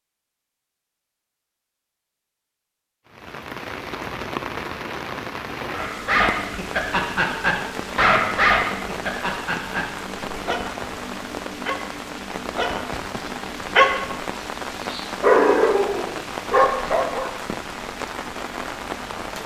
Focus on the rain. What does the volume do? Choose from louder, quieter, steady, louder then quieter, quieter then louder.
steady.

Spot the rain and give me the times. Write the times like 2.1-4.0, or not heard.
3.0-19.4.